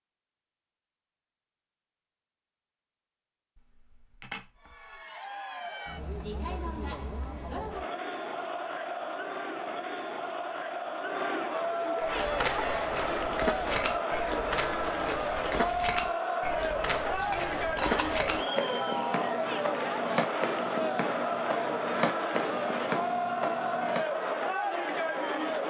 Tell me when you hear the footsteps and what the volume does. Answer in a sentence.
You can hear the footsteps from 12.0 to 24.1 s, at a steady volume.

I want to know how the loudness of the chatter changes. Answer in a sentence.
The volume of the chatter goes up.